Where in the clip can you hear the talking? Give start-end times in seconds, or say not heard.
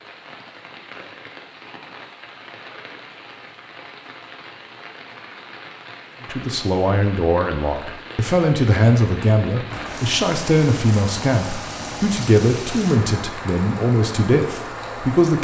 6.2-15.4.